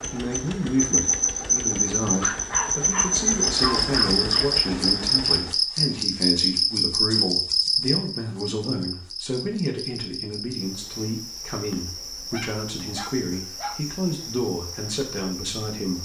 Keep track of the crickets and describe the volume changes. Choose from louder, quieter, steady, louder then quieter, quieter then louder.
quieter.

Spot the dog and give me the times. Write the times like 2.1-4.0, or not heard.
2.2-4.5, 12.3-13.8.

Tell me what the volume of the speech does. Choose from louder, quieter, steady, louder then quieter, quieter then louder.
steady.